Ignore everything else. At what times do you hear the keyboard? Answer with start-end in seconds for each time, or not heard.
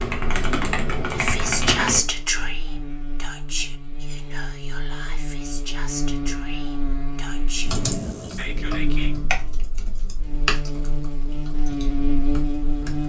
0.0-2.0, 7.7-13.0.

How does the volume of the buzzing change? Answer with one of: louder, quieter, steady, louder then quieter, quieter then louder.
louder.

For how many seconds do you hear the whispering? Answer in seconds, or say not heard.
8 s.